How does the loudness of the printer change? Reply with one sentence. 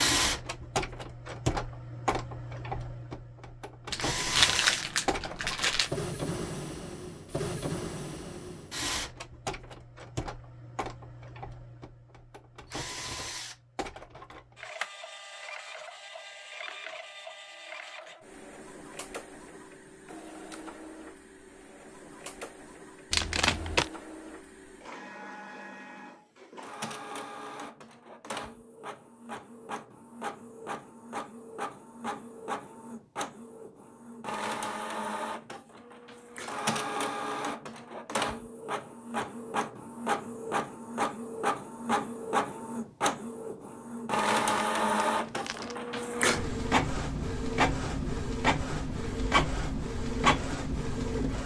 The volume of the printer goes down, then up.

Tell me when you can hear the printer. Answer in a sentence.
The printer can be heard from 0.0 to 51.4 s.